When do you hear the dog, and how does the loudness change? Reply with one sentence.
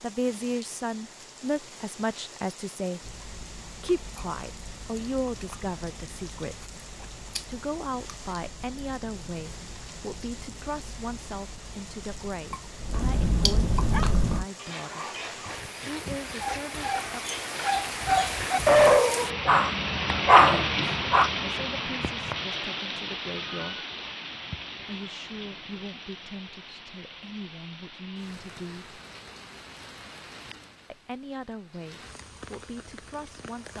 The dog can be heard from 13.9 to 21.3 s, getting louder.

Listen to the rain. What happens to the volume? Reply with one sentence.
The volume of the rain goes up, then down.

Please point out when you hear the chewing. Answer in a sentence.
The chewing can be heard from 3.0 to 14.4 s.